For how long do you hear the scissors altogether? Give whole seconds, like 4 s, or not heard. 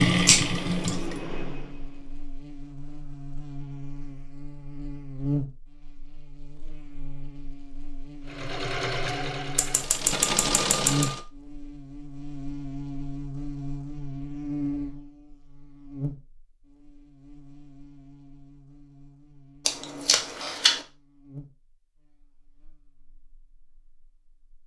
3 s.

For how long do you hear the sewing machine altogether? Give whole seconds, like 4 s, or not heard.
5 s.